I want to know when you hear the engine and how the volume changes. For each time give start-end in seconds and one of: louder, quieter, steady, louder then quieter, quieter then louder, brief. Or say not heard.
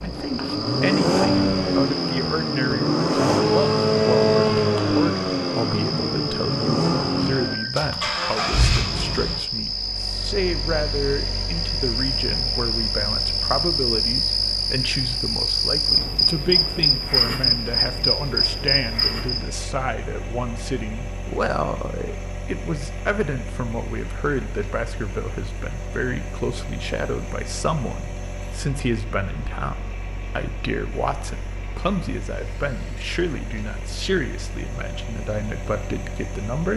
0.0-36.7 quieter.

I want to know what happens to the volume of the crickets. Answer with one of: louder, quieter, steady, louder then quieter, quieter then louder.
louder.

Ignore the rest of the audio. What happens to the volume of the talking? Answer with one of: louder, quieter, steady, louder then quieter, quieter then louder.
steady.